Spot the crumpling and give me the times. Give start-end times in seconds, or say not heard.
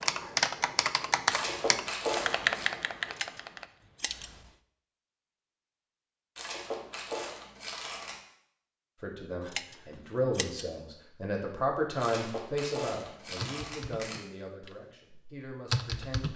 1.3-2.7, 6.3-8.2, 12.0-14.2.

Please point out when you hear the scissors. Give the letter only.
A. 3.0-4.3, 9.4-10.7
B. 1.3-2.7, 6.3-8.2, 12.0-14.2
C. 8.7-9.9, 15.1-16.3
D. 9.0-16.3
A.